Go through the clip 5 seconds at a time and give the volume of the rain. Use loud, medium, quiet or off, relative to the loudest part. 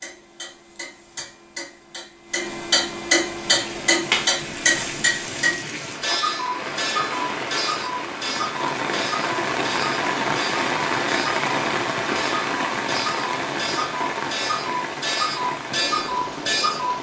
medium, loud, loud, medium.